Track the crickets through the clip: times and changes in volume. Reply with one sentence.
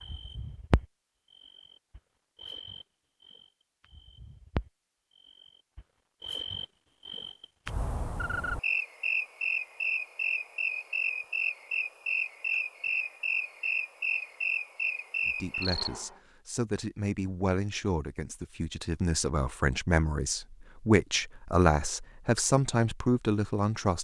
The crickets can be heard from 0.0 to 16.1 s, getting louder.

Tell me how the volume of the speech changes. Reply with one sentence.
The volume of the speech goes up.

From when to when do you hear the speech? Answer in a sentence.
The speech can be heard from 15.2 to 23.9 s.